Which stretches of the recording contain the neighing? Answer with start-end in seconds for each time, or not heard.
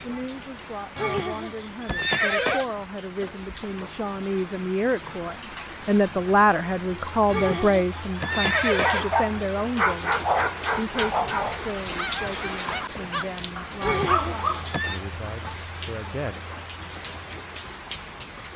0.9-2.6, 7.2-9.1, 13.8-15.0.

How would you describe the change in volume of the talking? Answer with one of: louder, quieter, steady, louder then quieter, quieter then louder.
louder then quieter.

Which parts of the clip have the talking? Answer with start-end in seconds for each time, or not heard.
0.0-16.4.